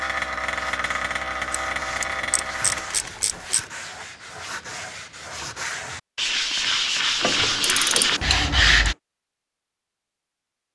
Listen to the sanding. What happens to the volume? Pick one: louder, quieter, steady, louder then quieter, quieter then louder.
louder.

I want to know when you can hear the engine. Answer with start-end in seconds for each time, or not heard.
0.0-3.0.